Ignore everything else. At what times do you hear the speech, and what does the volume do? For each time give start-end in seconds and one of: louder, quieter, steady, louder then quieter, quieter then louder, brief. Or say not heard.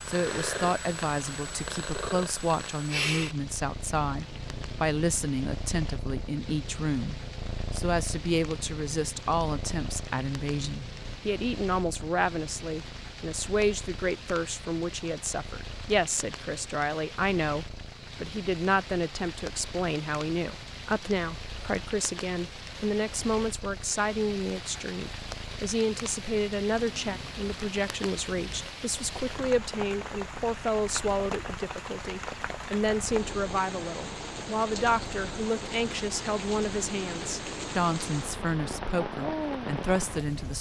0.1-40.5 steady.